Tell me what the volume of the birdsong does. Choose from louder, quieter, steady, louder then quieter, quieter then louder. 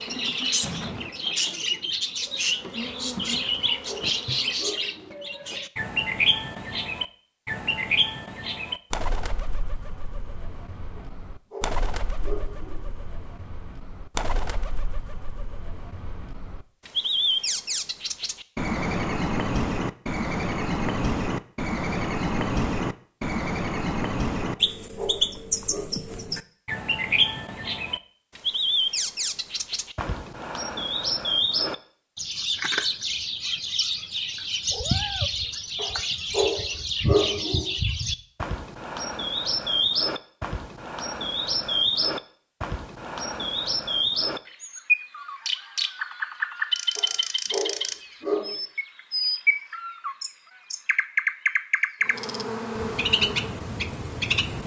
steady.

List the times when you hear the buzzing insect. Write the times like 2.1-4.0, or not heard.
0.0-4.8, 52.0-54.6.